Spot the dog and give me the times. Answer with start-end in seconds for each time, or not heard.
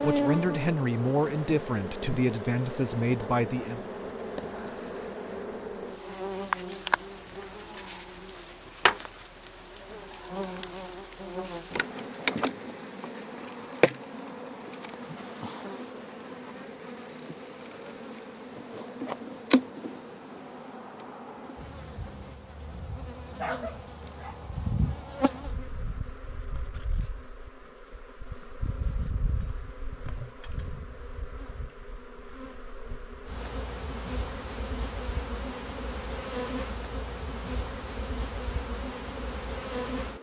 23.4-24.4.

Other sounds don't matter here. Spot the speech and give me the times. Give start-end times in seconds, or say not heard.
0.0-3.8.